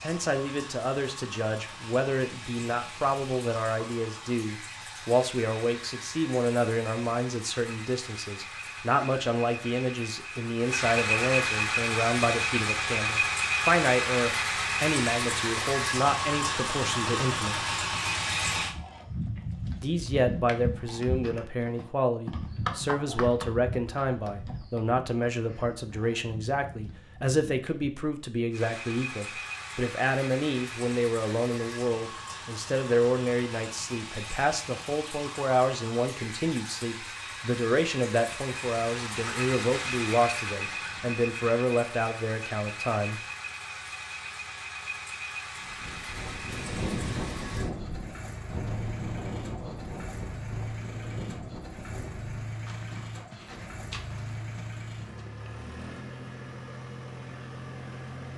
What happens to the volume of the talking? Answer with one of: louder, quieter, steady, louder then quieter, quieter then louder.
steady.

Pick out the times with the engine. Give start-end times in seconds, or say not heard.
0.0-18.8, 28.5-58.3.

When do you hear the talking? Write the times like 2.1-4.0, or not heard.
0.0-17.6, 19.8-43.2.